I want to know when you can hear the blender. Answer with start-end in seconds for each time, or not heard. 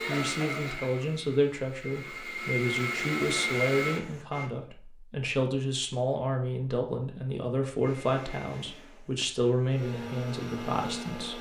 0.0-4.5, 7.8-11.3.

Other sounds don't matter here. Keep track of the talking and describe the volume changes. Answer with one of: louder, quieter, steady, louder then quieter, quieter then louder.
steady.